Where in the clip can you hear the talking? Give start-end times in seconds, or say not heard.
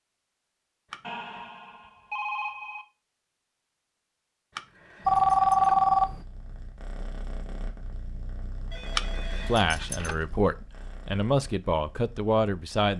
9.4-12.9.